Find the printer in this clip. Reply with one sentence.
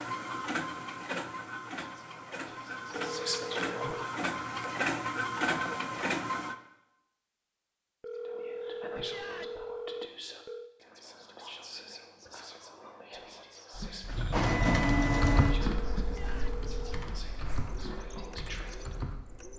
You can hear the printer from 0.0 to 6.5 s and from 14.1 to 19.5 s.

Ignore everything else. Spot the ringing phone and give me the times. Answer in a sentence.
You can hear the ringing phone from 2.9 to 4.1 s, from 8.0 to 10.7 s and from 15.3 to 17.1 s.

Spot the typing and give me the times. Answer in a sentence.
You can hear the typing from 13.7 to 19.2 s.